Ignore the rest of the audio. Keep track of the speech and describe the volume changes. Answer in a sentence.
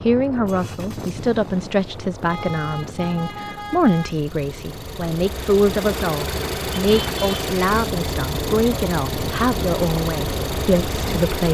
The volume of the speech stays about the same.